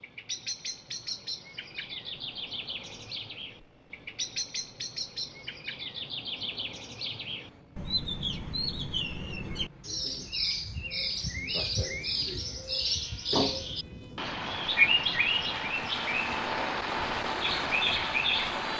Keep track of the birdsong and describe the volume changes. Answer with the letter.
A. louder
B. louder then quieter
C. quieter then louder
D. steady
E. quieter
A.